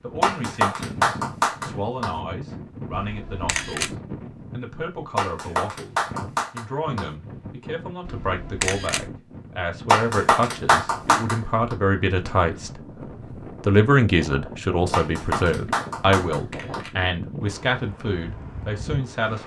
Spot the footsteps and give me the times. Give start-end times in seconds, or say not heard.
not heard.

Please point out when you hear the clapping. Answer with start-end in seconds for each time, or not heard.
0.2-2.1, 5.2-7.0, 9.8-11.8, 14.9-16.9.